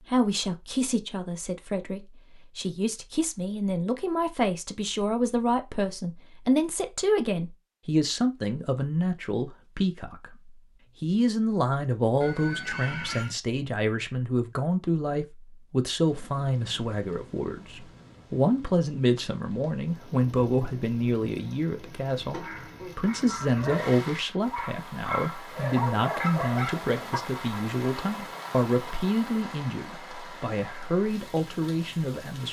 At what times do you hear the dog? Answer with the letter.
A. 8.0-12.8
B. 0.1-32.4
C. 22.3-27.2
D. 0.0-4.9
C.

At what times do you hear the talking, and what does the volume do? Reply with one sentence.
You can hear the talking from 0.1 to 32.4 s, at a steady volume.